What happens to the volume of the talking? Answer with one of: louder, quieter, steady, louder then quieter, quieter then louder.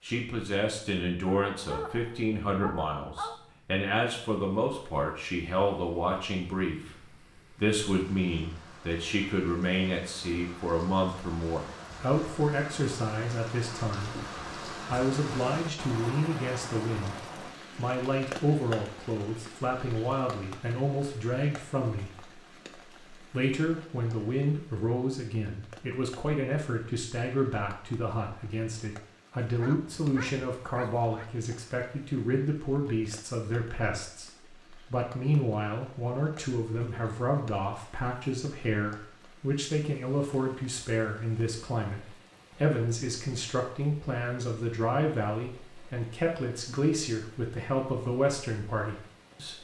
steady.